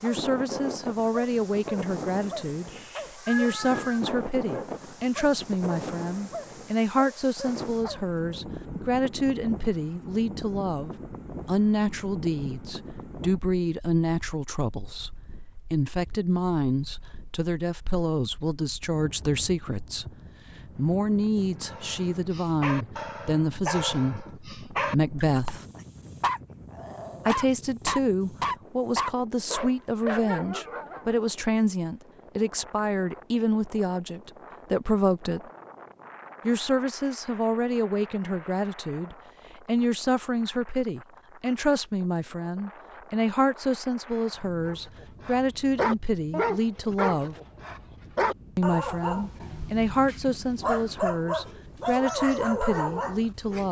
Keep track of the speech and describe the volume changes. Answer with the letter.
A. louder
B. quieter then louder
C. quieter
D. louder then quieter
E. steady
E.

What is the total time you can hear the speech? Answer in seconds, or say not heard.
50 s.